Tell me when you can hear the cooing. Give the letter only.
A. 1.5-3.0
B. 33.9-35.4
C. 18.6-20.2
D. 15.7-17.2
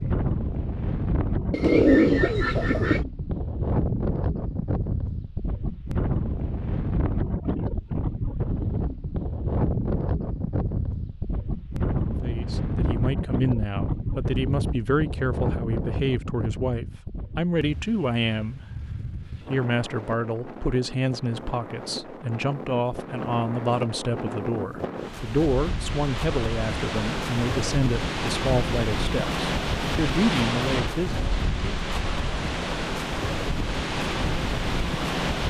A.